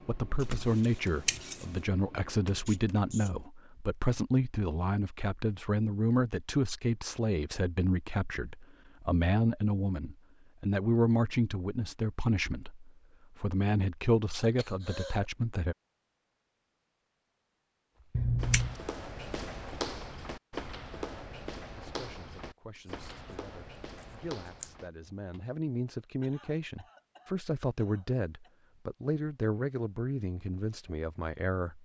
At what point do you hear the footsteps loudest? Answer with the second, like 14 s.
20 s.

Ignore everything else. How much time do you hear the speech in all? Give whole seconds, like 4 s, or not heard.
26 s.